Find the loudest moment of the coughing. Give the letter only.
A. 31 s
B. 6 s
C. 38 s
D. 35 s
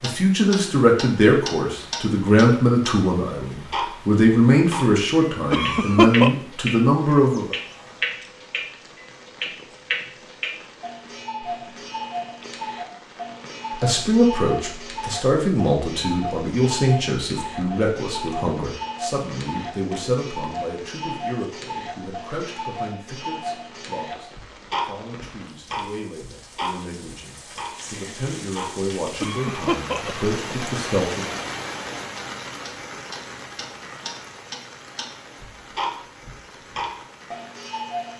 B.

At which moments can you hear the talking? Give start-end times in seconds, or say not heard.
0.0-7.5, 13.7-31.4.